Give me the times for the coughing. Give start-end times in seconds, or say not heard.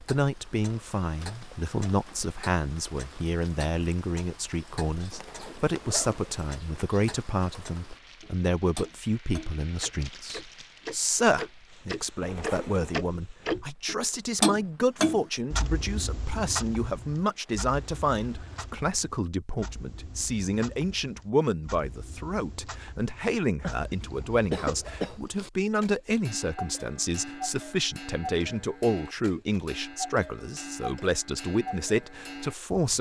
23.6-25.5.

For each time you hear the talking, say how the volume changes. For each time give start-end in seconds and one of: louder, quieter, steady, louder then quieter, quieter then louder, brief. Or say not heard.
0.1-32.9 steady.